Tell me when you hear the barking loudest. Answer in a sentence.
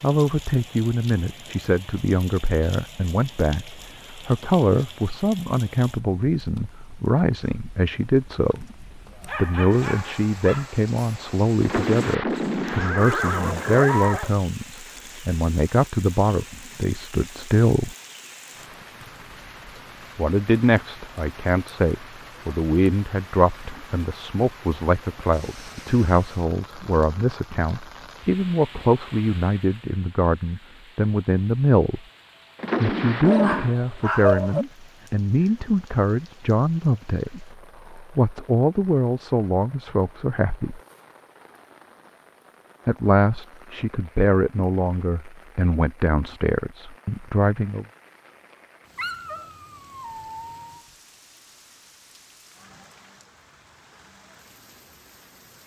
The loudest moment of the barking is at 34 seconds.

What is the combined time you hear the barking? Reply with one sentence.
You can hear the barking for 5 seconds altogether.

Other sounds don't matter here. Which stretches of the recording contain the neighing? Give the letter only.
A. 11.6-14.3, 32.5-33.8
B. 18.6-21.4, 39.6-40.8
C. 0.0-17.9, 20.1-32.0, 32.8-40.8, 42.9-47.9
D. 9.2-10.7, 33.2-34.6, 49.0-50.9
A.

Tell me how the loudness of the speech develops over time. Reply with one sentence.
The volume of the speech stays about the same.